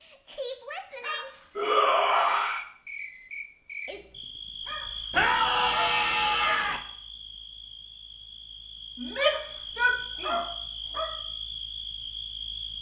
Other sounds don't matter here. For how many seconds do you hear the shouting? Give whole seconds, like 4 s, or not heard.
4 s.